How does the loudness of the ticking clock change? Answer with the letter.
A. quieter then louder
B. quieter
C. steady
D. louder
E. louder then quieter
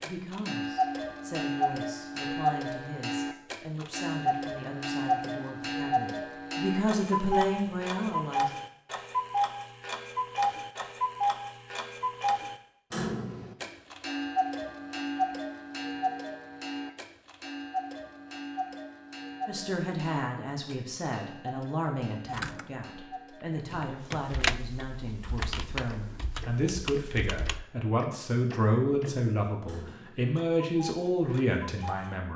B.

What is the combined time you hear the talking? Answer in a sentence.
The talking can be heard for 21 seconds in total.